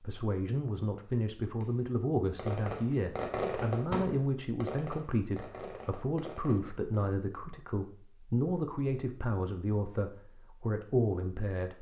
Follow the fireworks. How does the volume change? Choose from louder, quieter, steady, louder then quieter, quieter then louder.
quieter.